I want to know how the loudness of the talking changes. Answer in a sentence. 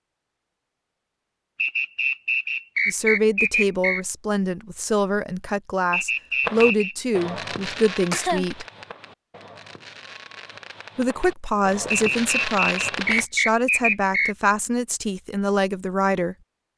The loudness of the talking stays about the same.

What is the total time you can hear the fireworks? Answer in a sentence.
You can hear the fireworks for 7 seconds altogether.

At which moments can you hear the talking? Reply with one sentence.
You can hear the talking from 2.9 to 8.7 s and from 10.9 to 16.4 s.